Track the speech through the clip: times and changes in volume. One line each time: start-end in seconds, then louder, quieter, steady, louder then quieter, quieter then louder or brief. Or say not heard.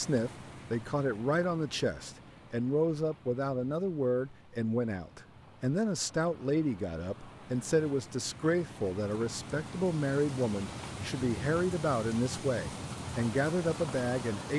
0.0-14.5 steady.